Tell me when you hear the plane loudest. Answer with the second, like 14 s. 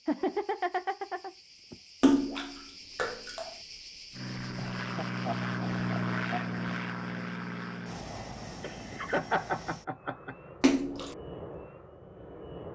6 s.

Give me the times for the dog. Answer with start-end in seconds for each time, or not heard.
not heard.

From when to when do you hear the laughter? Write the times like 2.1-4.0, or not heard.
0.1-1.8, 4.5-6.5, 8.6-10.3.